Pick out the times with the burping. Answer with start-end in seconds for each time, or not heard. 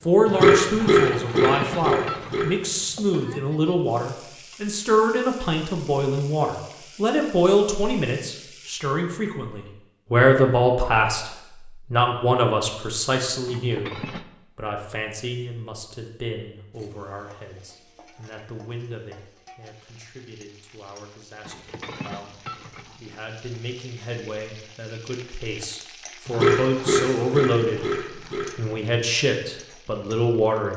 0.2-2.5, 26.2-28.6.